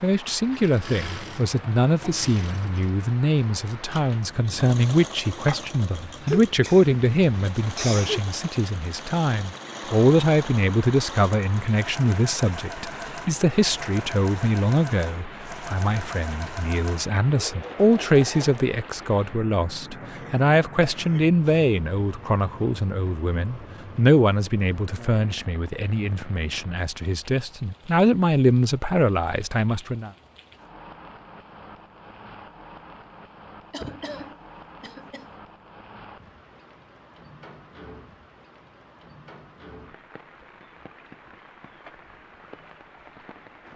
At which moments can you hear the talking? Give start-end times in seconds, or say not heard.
0.0-30.1.